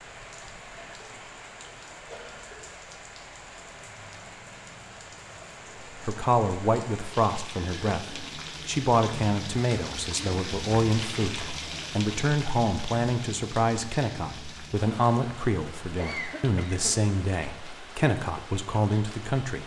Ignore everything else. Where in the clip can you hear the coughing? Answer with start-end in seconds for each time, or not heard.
0.8-1.2, 2.0-2.6, 7.6-8.4, 15.9-16.9.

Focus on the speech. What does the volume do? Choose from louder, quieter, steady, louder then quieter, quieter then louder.
steady.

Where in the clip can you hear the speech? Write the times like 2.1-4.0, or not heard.
6.0-19.6.